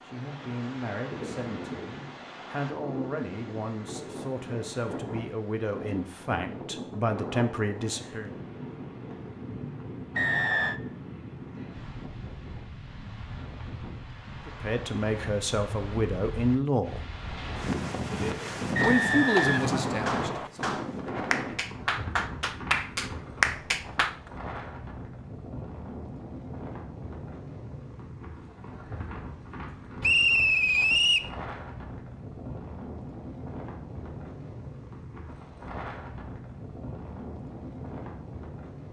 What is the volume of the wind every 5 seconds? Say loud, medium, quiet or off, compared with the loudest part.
medium, medium, medium, loud, loud, medium, medium, medium.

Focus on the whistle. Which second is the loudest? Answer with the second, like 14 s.
30 s.